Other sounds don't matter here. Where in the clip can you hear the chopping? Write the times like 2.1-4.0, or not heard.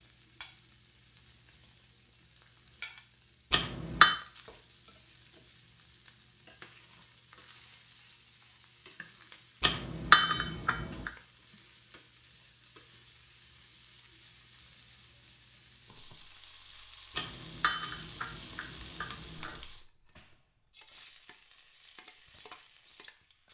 not heard.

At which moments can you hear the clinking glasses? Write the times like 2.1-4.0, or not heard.
3.5-4.2, 9.6-11.1, 17.1-19.6.